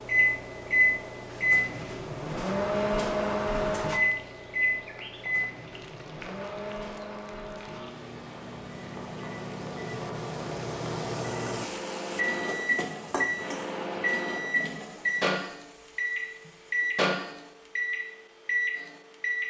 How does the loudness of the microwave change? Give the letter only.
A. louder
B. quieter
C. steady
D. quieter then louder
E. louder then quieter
D.